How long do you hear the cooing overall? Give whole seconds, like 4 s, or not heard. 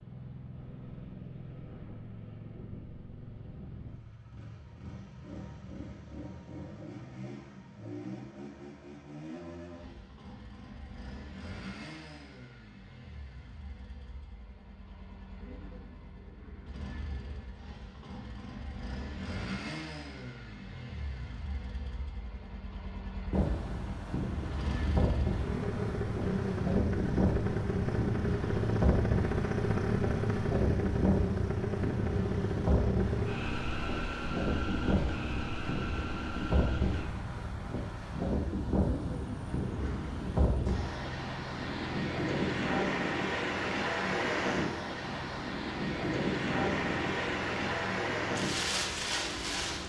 4 s.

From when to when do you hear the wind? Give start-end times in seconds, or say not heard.
23.3-49.8.